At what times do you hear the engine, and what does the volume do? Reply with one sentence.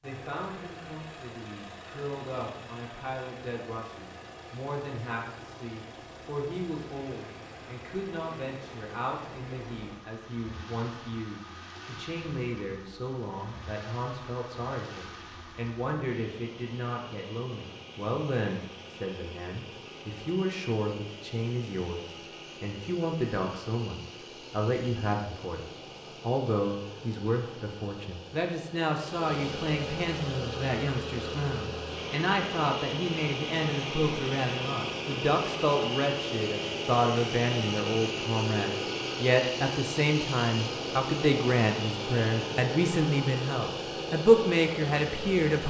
The engine can be heard from 0.0 to 45.6 s, getting louder.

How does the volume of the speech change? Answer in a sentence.
The volume of the speech goes up.